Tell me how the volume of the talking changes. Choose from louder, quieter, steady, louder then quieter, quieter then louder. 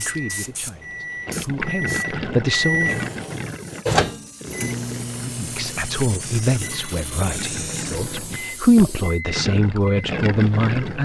louder.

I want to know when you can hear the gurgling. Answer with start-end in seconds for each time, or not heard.
1.2-11.0.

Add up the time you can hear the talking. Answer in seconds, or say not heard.
9 s.